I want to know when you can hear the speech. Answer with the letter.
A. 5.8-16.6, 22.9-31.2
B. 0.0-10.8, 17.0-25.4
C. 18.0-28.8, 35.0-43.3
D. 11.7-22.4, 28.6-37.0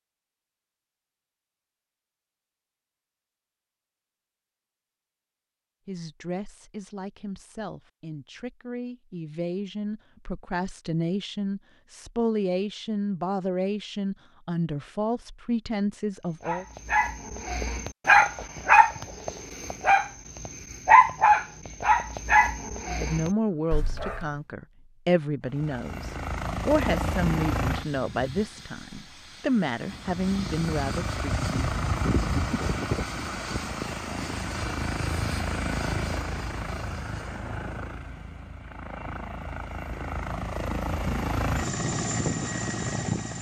A.